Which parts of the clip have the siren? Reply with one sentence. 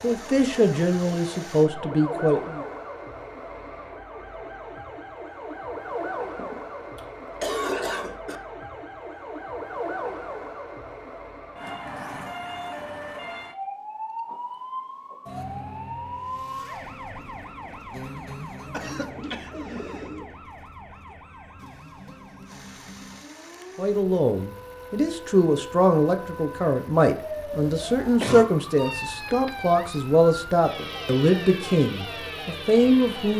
You can hear the siren from 0.0 to 33.3 s.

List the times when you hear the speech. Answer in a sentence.
The speech can be heard from 0.0 to 2.6 s and from 23.8 to 33.3 s.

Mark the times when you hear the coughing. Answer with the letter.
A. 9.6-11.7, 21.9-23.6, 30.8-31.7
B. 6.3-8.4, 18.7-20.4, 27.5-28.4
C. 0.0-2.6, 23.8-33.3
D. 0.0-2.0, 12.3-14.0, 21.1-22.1
B.